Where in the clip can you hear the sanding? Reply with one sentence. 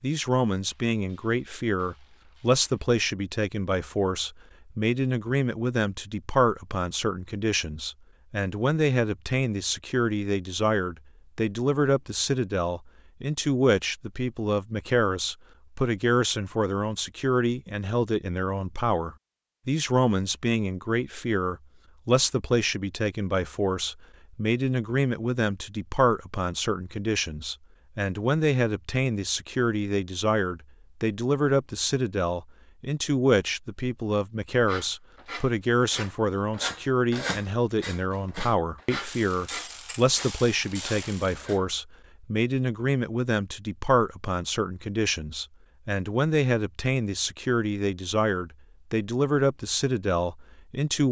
The sanding can be heard from 34.5 to 41.7 s.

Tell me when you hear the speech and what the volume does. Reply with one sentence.
You can hear the speech from 0.0 to 51.0 s, at a steady volume.